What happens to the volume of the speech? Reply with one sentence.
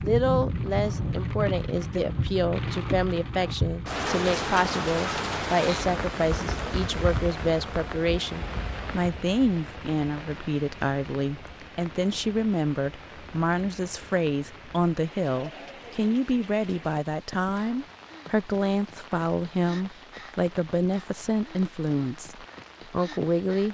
The loudness of the speech stays about the same.